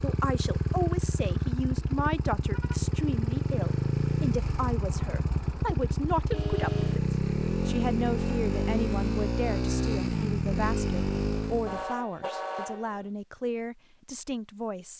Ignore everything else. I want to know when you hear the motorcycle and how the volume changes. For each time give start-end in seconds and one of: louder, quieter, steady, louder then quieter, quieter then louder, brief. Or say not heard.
0.0-11.8 steady.